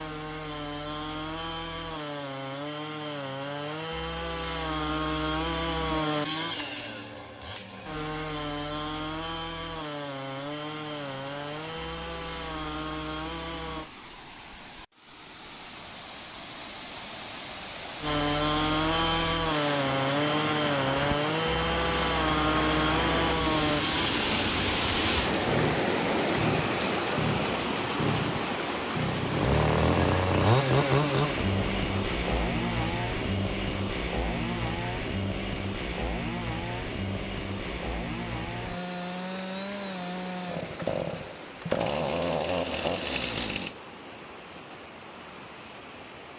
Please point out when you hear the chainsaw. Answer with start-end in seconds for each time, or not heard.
0.0-13.9, 18.0-43.8.